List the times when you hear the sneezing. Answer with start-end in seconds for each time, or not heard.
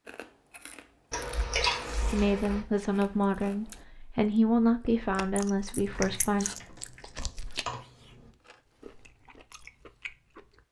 not heard.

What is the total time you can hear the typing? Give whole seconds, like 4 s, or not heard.
4 s.